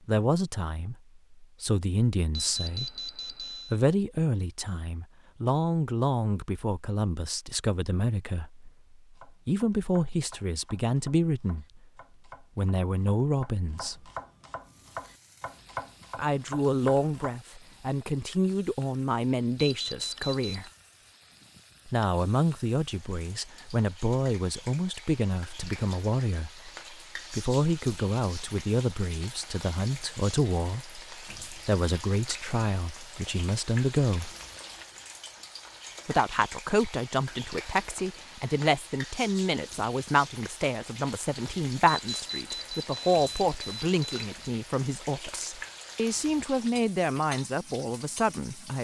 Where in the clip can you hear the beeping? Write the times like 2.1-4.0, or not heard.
2.3-3.8, 19.6-20.7, 41.9-44.2.